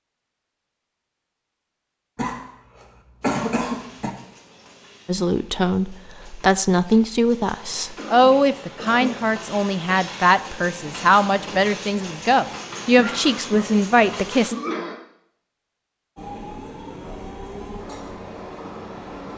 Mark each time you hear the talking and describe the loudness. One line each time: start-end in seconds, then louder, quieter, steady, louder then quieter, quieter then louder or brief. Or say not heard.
5.0-14.6 steady.